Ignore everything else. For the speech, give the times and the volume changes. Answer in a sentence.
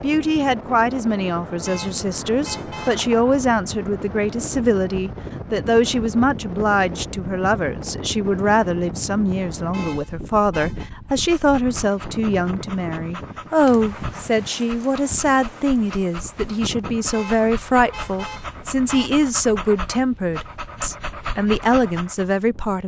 You can hear the speech from 0.0 to 22.8 s, at a steady volume.